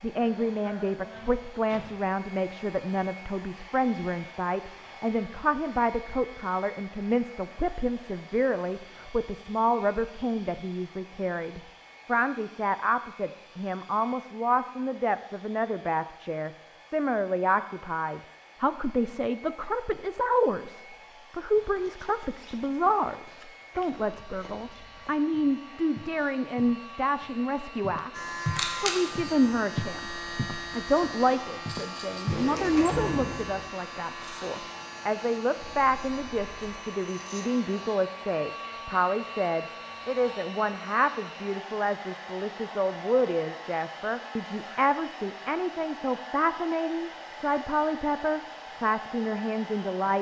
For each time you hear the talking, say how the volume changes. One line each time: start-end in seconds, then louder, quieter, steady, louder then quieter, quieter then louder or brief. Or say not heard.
0.0-50.1 steady.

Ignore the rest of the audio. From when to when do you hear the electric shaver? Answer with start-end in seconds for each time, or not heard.
28.1-38.0.